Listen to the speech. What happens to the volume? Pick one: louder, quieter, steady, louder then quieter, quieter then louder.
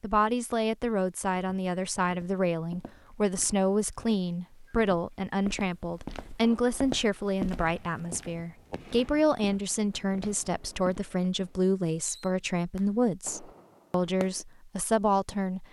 steady.